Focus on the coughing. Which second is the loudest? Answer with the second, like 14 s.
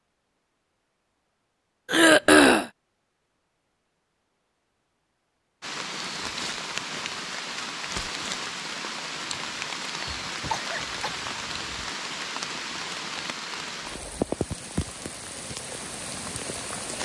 2 s.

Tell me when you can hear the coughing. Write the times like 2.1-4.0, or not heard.
1.9-2.7, 10.1-11.7.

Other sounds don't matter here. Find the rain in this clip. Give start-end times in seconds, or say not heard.
5.6-17.0.